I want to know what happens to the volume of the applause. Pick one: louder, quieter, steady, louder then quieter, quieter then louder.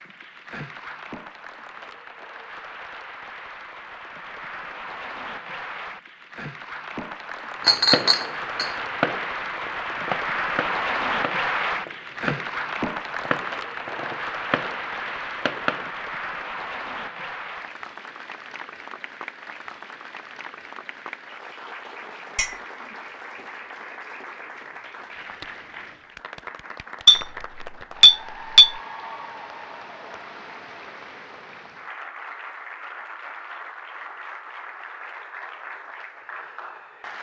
louder then quieter.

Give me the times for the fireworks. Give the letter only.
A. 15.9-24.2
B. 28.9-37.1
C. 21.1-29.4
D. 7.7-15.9
D.